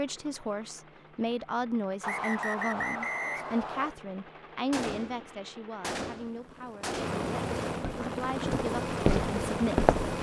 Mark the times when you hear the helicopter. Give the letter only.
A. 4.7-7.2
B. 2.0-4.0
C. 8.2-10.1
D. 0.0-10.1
D.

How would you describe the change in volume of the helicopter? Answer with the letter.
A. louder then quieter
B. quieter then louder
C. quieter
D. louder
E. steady
D.